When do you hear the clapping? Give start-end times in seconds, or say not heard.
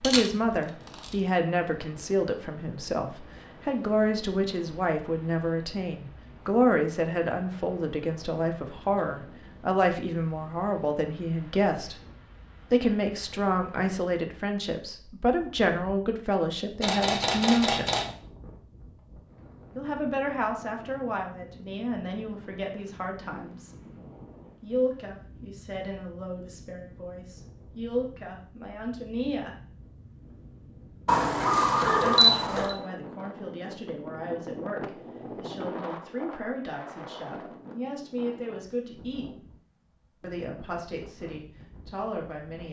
not heard.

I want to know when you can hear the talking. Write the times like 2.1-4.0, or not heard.
0.0-11.9, 12.7-17.9, 19.8-23.7, 24.6-29.5, 32.0-39.3, 40.2-42.6.